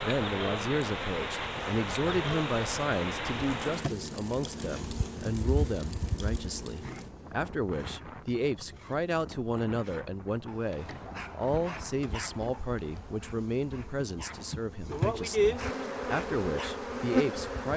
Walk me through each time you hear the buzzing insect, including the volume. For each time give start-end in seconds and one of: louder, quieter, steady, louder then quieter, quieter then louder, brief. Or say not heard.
0.0-17.7 quieter then louder.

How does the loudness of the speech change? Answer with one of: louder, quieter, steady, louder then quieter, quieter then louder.
steady.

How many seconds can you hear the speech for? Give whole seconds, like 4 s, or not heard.
18 s.